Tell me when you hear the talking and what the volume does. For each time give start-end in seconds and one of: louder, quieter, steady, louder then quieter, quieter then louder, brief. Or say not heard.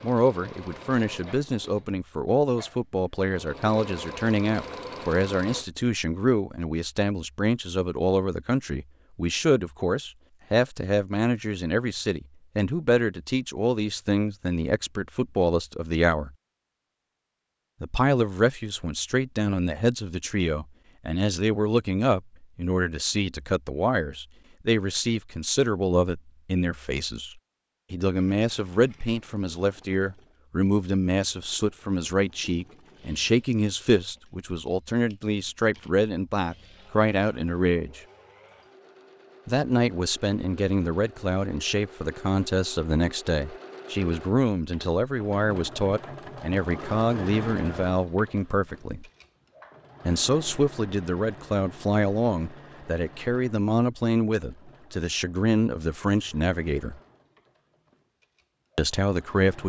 0.0-16.3 steady
17.8-38.0 steady
39.5-49.0 steady
50.0-57.0 steady
58.8-59.6 brief.